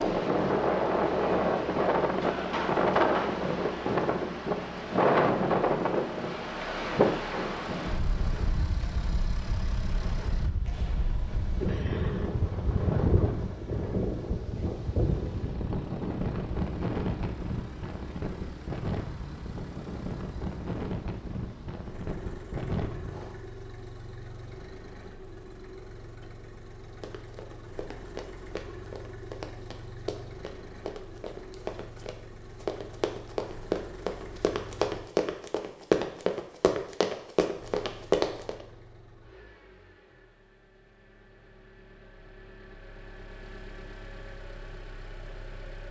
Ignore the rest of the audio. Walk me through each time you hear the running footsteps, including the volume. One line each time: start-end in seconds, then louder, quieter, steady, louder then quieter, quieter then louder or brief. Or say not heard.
27.0-38.6 louder.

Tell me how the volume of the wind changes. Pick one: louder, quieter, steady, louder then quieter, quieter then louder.
quieter.